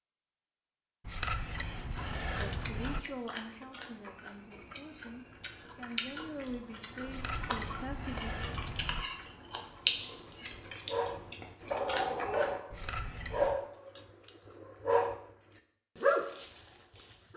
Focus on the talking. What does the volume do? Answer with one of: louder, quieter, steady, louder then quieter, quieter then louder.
quieter then louder.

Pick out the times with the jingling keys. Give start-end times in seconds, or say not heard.
1.1-3.0, 7.0-9.1, 12.7-13.6.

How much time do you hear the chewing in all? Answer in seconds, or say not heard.
11 s.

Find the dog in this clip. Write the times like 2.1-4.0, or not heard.
10.3-17.3.